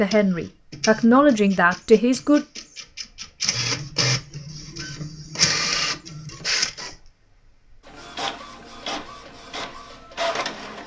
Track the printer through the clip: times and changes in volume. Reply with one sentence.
You can hear the printer from 0.0 to 10.8 s, getting louder then quieter.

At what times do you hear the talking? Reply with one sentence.
The talking can be heard from 0.0 to 2.5 s.